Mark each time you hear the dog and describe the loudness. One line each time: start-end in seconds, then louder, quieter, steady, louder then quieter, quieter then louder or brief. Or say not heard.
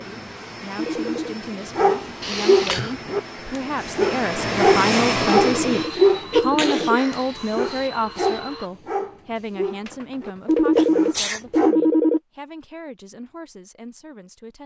1.8-11.8 quieter.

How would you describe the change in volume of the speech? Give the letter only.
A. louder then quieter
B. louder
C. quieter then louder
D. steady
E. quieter
A.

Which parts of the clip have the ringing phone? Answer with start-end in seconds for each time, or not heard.
0.8-1.4, 5.4-7.0, 10.4-12.2.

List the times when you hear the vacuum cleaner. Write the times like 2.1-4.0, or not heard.
0.0-8.7.